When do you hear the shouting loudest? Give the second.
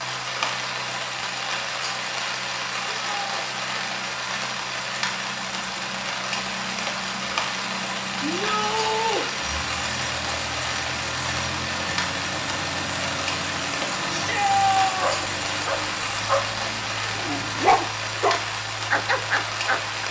15 s.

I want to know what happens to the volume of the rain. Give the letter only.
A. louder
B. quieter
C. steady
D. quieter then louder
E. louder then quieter
C.